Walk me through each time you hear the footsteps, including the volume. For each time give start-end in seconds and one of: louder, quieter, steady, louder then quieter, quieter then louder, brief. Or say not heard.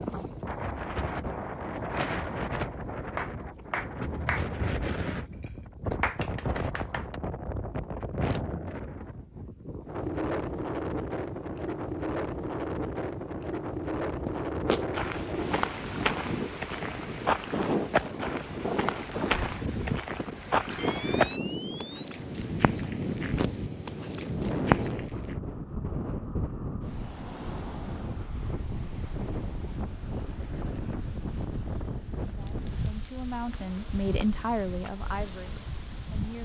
14.1-25.4 steady.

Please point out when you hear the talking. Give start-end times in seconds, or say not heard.
32.2-36.4.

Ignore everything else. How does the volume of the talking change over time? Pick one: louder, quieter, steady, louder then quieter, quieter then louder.
louder then quieter.